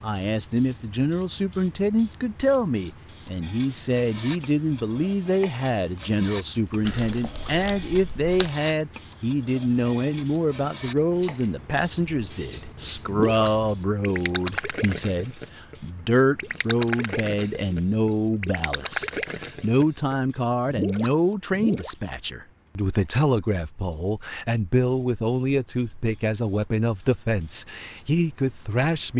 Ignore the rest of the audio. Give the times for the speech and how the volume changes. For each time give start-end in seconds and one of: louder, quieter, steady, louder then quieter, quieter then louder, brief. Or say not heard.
0.0-29.1 steady.